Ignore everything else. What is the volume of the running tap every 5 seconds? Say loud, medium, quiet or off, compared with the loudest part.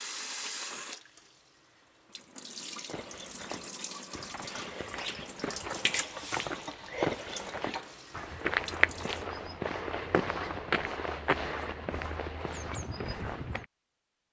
loud, loud, off.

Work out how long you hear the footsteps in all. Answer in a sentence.
You can hear the footsteps for 11 seconds altogether.